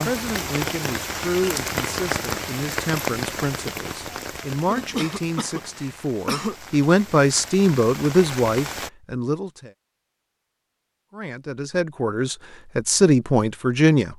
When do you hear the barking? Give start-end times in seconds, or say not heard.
not heard.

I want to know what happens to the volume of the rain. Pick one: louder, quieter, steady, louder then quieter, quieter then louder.
quieter then louder.